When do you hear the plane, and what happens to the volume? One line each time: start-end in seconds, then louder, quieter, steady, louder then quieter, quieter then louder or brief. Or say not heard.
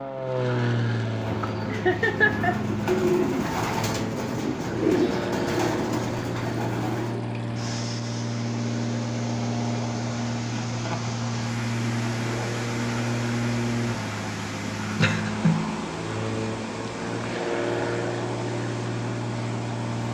0.0-20.0 steady.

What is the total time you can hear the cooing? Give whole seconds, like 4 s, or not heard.
6 s.